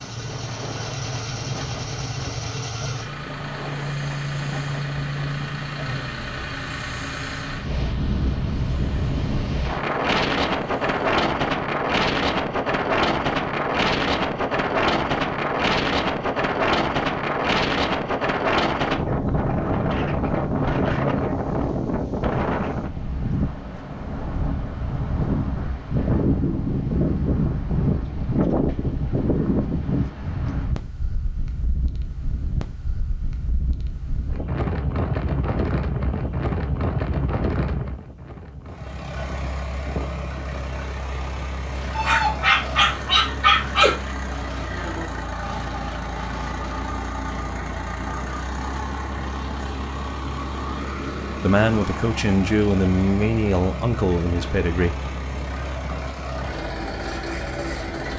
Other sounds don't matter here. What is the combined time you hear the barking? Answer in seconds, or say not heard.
2 s.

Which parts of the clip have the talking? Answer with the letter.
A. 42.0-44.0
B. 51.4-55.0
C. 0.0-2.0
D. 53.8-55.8
B.